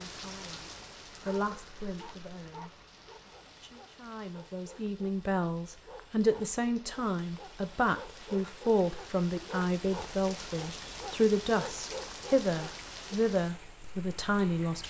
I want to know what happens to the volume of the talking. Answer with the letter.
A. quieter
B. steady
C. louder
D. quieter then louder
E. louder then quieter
C.